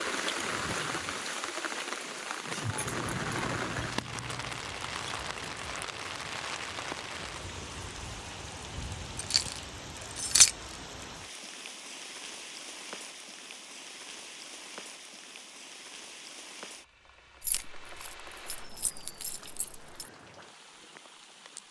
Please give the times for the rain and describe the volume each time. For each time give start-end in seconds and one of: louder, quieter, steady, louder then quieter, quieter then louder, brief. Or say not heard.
0.0-21.6 quieter.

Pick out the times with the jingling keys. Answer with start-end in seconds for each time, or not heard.
2.8-4.7, 9.2-10.5, 17.4-20.1.